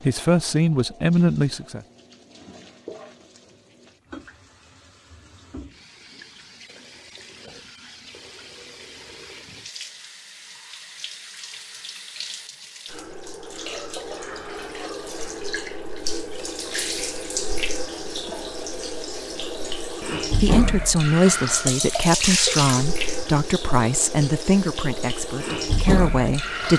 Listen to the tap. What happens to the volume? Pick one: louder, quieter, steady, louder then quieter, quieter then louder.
louder.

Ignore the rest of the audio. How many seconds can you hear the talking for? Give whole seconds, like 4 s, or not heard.
8 s.